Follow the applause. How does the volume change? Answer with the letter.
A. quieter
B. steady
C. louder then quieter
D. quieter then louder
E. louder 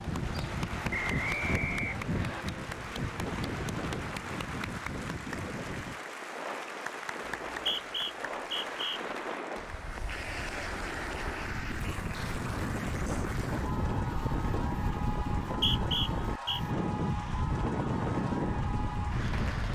B.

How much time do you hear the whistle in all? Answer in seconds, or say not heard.
4 s.